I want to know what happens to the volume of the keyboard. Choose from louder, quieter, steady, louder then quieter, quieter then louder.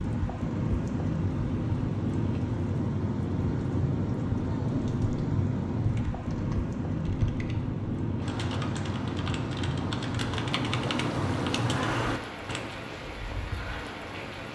louder.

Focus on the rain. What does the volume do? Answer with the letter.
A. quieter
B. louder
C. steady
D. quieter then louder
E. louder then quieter
A.